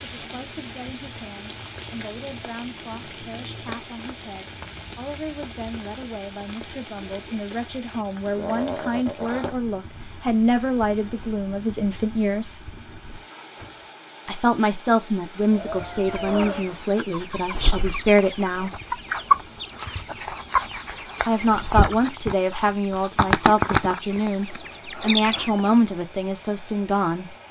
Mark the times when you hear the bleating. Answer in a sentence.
The bleating can be heard from 7.8 to 9.5 s and from 15.5 to 16.6 s.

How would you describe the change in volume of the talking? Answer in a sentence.
The loudness of the talking goes up.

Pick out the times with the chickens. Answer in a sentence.
You can hear the chickens from 16.0 to 25.8 s.